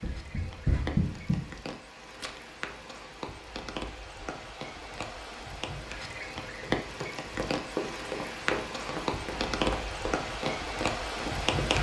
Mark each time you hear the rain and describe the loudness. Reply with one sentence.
The rain can be heard from 0.0 to 11.7 s, getting louder.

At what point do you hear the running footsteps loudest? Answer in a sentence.
The loudest moment of the running footsteps is at 1 second.